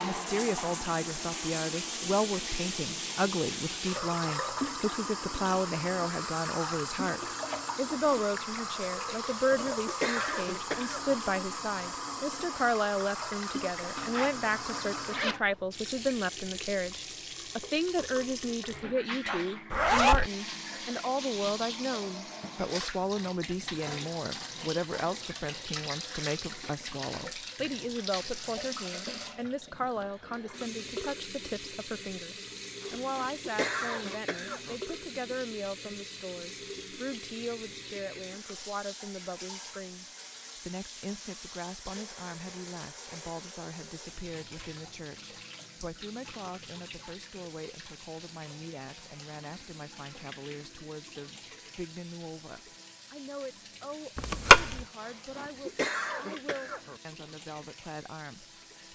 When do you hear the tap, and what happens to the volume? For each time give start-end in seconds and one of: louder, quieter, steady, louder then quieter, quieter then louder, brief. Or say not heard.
0.0-58.9 quieter.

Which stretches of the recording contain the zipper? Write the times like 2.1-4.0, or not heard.
13.9-15.4, 19.7-20.3, 54.1-54.8.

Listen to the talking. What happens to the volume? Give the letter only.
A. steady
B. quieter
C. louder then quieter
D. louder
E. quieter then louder
B.